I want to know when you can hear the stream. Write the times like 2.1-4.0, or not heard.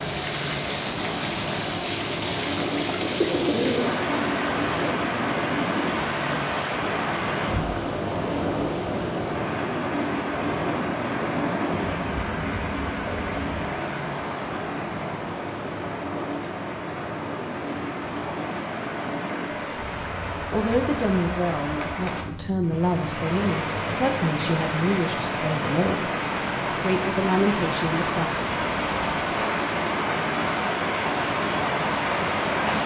0.0-32.8.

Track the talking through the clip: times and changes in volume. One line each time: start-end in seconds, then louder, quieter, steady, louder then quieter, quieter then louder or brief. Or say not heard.
20.5-26.1 steady
26.8-28.3 brief.